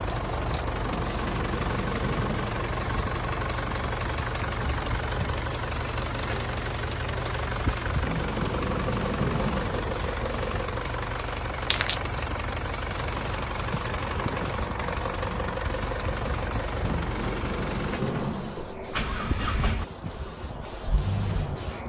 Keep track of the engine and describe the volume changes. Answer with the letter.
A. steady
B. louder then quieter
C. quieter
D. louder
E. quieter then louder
A.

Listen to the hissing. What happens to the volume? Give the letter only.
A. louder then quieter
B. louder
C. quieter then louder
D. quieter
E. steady
E.